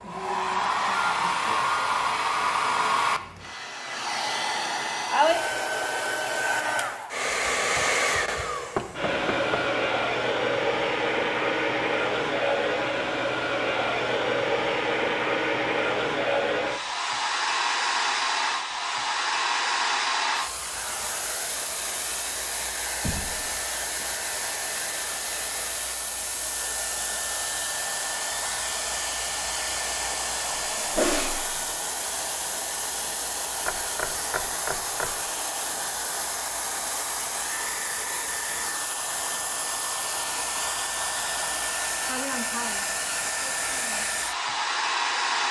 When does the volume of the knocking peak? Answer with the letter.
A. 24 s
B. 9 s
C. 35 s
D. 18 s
B.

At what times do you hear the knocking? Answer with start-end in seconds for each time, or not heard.
8.8-9.7, 23.0-23.5, 33.6-35.2.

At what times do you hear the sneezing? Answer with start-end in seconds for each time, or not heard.
30.8-31.6.